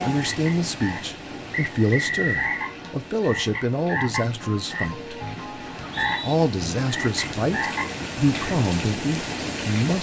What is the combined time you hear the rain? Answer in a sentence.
You can hear the rain for 10 seconds altogether.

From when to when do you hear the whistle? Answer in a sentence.
You can hear the whistle from 1.5 to 2.6 s and from 5.7 to 6.3 s.